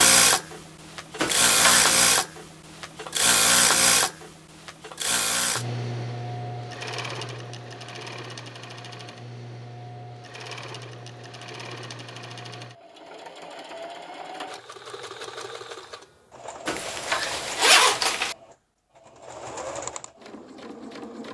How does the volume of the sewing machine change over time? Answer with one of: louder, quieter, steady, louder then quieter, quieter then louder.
quieter.